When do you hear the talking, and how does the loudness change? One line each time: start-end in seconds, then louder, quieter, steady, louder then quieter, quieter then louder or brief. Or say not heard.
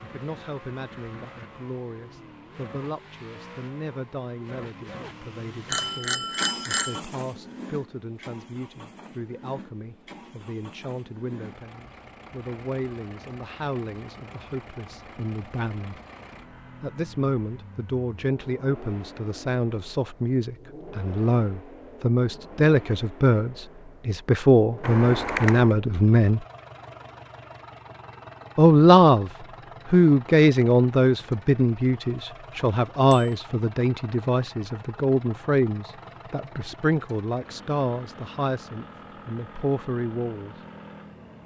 0.0-16.0 steady
16.8-26.4 louder
28.6-29.3 brief
29.9-40.5 quieter.